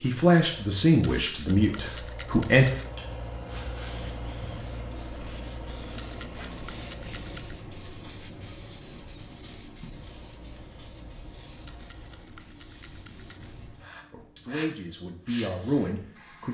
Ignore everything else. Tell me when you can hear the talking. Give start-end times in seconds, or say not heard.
0.0-2.6, 14.1-16.4.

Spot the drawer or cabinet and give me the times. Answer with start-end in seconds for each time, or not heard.
not heard.